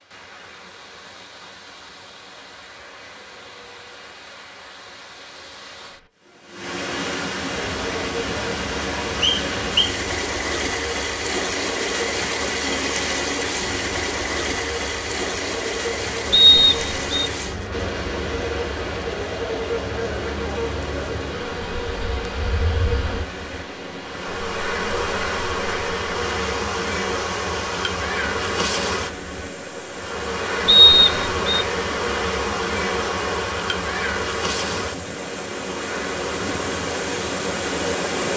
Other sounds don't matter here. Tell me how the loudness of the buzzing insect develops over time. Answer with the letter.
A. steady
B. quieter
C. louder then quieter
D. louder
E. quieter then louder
D.